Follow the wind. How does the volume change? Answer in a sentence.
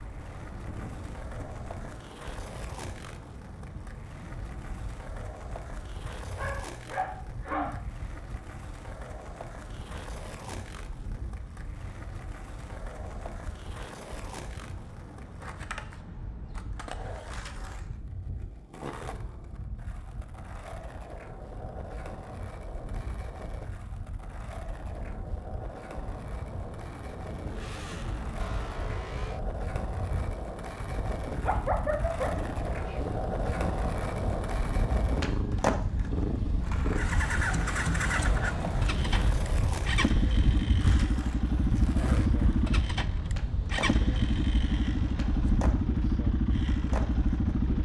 The loudness of the wind goes up.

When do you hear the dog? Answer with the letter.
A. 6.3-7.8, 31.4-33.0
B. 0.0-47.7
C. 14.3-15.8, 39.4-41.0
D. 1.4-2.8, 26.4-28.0
A.